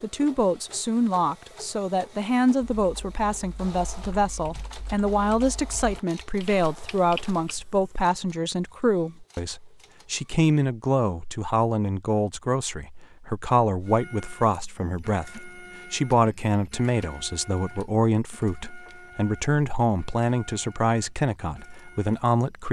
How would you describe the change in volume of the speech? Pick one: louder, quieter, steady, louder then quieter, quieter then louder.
steady.